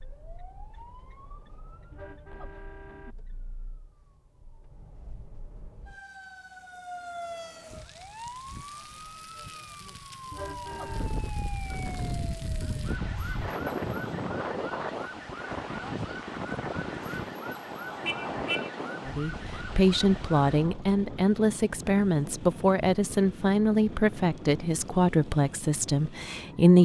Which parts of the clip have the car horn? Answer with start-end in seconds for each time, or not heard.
1.9-3.1, 10.3-11.1, 18.0-18.7.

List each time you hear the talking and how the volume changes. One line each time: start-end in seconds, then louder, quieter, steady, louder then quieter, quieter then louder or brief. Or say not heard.
19.1-26.8 steady.